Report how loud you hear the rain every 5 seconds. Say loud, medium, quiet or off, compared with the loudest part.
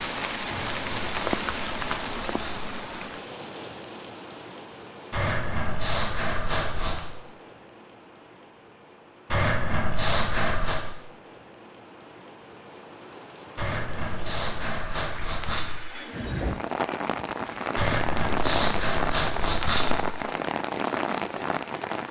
loud, quiet, quiet, loud, loud.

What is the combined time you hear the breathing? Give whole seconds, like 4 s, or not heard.
10 s.